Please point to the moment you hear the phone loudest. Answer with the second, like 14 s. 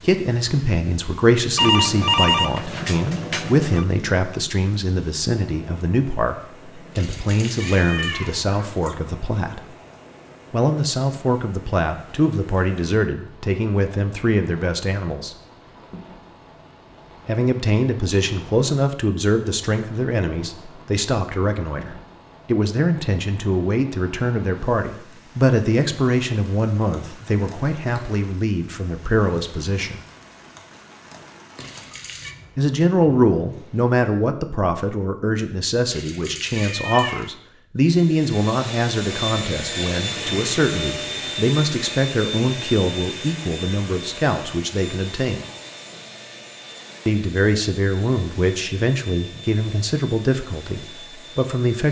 2 s.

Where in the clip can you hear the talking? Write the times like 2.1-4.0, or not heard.
0.0-9.7, 10.5-15.3, 17.2-30.0, 32.5-45.4, 47.0-51.8.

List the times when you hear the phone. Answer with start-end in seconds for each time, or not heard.
1.6-3.9.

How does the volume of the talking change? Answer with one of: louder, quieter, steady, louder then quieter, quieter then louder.
steady.